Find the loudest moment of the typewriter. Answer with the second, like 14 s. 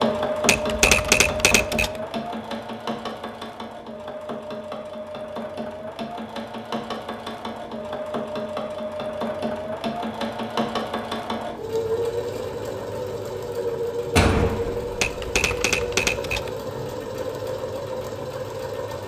1 s.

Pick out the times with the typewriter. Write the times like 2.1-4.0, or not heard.
0.5-2.0, 15.0-16.5.